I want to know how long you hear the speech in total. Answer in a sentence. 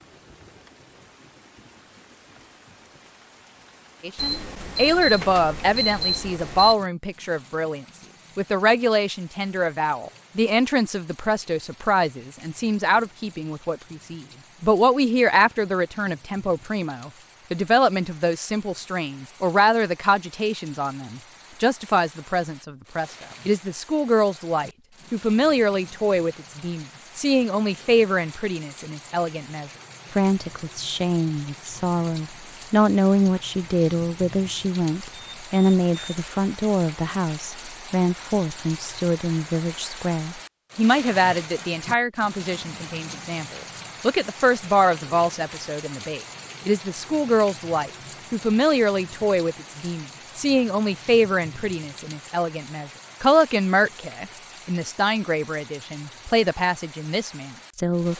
The speech can be heard for 54 seconds in total.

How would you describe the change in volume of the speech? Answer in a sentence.
The volume of the speech stays about the same.